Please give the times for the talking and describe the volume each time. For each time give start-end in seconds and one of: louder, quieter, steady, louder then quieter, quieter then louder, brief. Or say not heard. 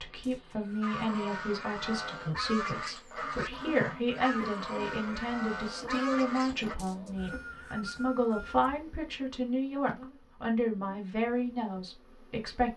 0.0-12.7 steady.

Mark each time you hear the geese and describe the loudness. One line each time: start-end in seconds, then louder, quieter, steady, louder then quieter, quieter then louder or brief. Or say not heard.
0.8-6.8 steady.